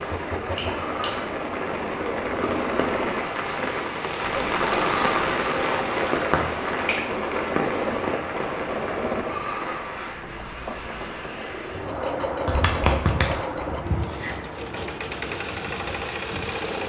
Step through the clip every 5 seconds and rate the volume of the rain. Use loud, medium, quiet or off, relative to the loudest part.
loud, loud, medium, medium.